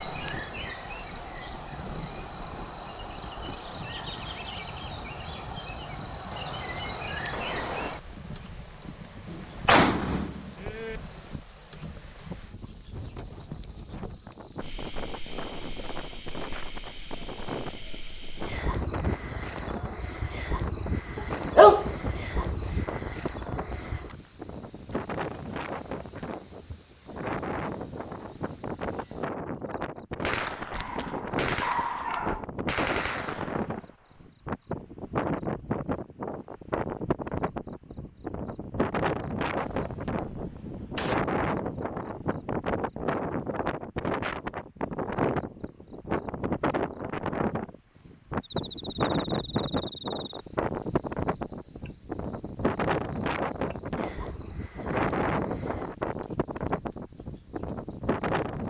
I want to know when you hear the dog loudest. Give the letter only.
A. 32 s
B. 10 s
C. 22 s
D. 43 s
C.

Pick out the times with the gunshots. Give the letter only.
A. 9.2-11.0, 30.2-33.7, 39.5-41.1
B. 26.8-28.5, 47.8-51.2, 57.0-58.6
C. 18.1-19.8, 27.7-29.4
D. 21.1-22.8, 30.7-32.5
A.